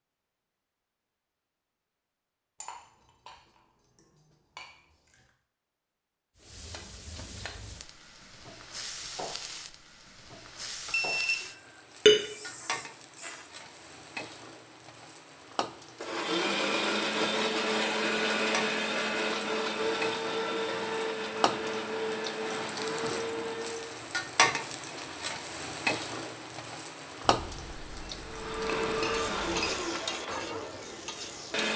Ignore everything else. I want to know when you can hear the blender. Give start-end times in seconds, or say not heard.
15.9-24.0, 28.2-31.7.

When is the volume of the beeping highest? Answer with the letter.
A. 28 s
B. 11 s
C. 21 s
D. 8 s
B.